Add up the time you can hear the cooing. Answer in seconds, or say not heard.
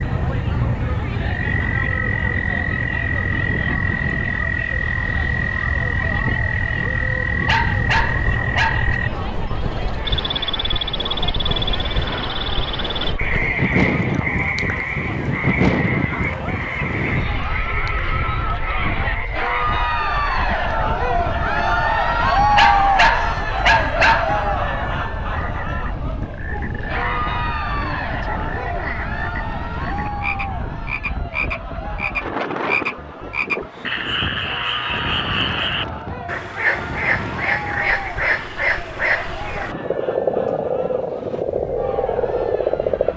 not heard.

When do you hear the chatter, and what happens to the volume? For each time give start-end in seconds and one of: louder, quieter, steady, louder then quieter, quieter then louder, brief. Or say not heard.
0.0-43.1 louder then quieter.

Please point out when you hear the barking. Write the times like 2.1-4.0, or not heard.
7.5-9.0, 22.6-24.4.